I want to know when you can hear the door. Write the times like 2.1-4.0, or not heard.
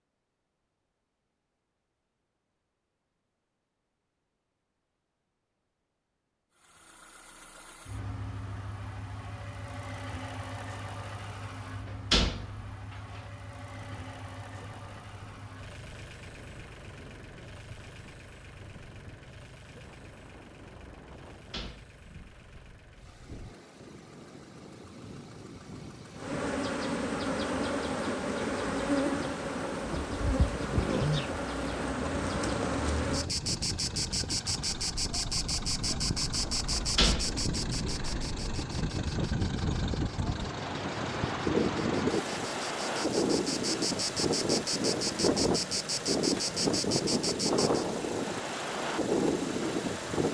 11.8-13.2, 21.3-22.6, 36.8-37.3.